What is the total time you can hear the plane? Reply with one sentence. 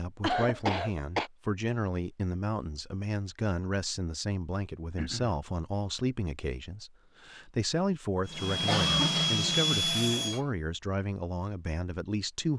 You can hear the plane for 2 seconds altogether.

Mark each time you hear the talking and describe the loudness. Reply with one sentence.
The talking can be heard from 0.0 to 12.5 s, at a steady volume.